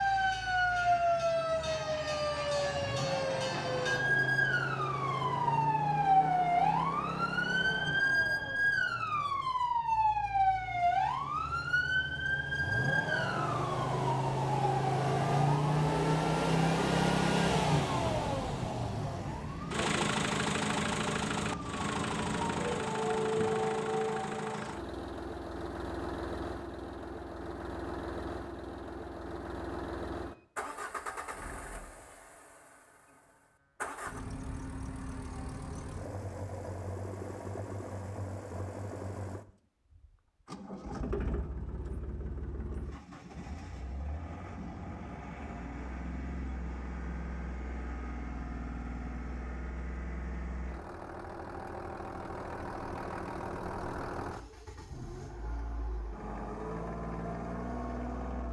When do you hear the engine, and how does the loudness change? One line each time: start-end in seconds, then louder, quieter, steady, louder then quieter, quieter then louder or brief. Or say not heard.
0.0-58.4 louder then quieter.